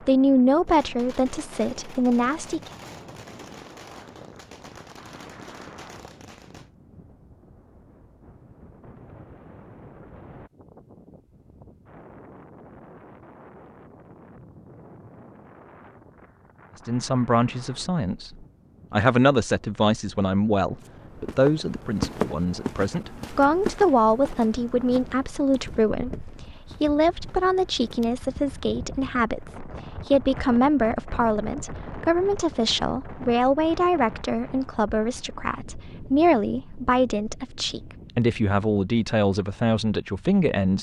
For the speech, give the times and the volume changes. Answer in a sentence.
You can hear the speech briefly from 0.1 to 2.7 s; and from 16.9 to 40.7 s, at a steady volume.